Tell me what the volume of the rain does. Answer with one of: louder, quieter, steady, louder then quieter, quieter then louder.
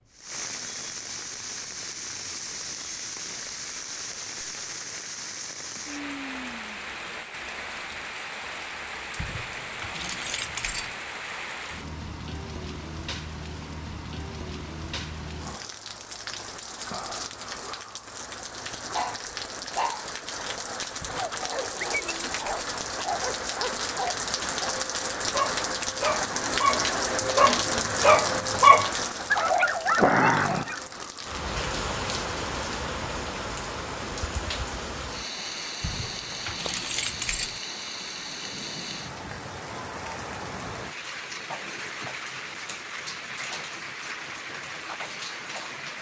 louder then quieter.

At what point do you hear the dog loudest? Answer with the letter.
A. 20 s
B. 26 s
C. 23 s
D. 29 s
D.